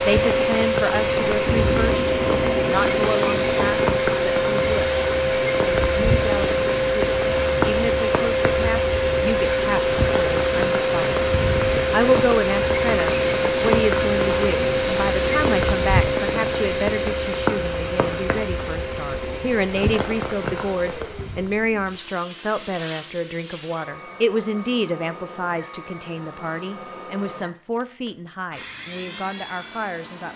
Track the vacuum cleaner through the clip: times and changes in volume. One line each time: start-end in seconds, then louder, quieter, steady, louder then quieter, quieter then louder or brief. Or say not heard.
0.0-30.3 quieter.